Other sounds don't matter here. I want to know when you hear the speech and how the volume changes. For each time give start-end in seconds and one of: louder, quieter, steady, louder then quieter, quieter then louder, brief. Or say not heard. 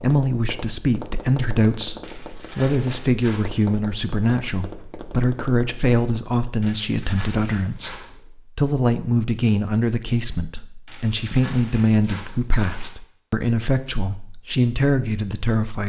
0.0-8.0 steady
8.6-15.8 steady.